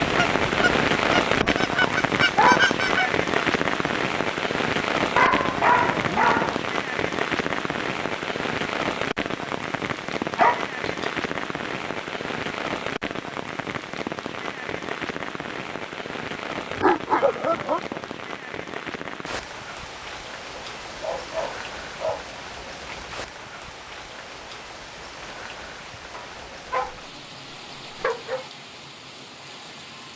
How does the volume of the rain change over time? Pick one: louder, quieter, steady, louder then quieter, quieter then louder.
quieter.